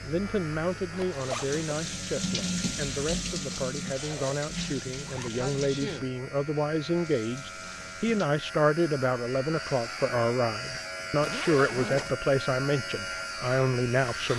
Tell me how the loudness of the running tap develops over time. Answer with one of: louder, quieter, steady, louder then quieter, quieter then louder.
louder then quieter.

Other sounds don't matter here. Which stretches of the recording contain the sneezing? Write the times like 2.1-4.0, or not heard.
5.3-6.1.